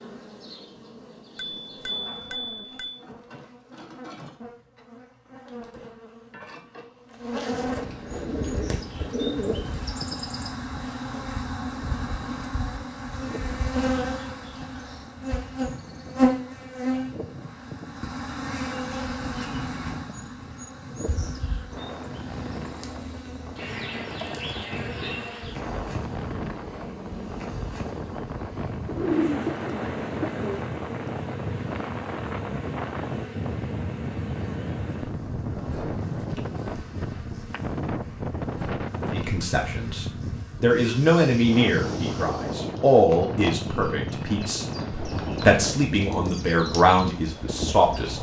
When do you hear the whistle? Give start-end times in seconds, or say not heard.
not heard.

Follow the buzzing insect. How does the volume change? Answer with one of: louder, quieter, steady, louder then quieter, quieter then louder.
louder then quieter.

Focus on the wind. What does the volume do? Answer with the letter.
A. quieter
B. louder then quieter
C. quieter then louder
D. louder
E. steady
D.